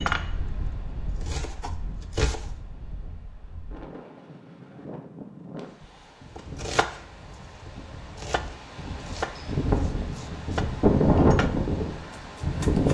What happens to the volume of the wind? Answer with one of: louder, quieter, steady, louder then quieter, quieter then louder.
louder.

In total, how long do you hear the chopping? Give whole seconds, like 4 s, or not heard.
9 s.